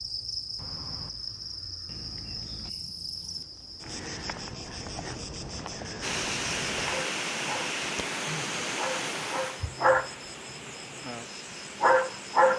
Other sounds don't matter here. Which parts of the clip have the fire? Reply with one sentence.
You can't hear the fire here.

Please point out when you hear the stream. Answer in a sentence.
You can hear the stream from 6.0 to 12.5 s.